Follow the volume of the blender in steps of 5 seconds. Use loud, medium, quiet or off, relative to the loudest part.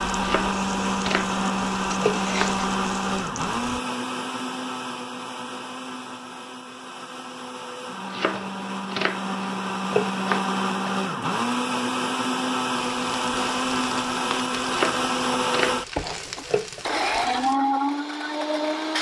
loud, medium, loud, loud.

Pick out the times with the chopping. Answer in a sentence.
You can hear the chopping from 0.2 to 2.6 s, from 8.1 to 10.9 s and from 14.7 to 16.9 s.